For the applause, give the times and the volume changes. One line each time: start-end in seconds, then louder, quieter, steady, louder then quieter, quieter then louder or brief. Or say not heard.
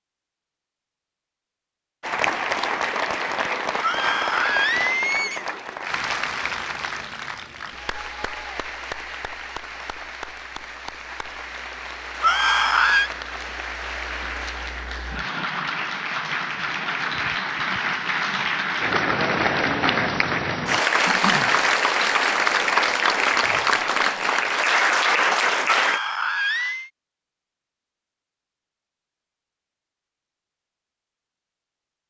2.0-26.0 quieter then louder.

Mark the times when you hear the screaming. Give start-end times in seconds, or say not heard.
3.8-5.5, 12.2-13.1, 25.8-26.9.